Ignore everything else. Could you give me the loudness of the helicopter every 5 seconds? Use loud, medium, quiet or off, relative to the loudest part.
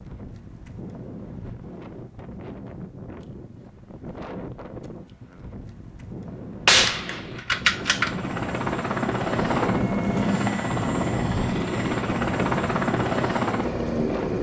off, loud, loud.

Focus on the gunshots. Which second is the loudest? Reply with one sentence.
The loudest moment of the gunshots is at 7 seconds.